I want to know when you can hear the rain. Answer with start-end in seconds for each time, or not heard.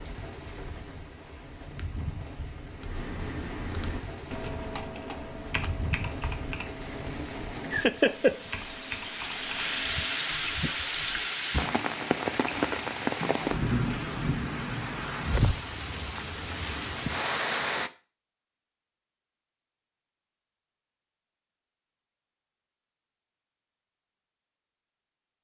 0.0-17.9.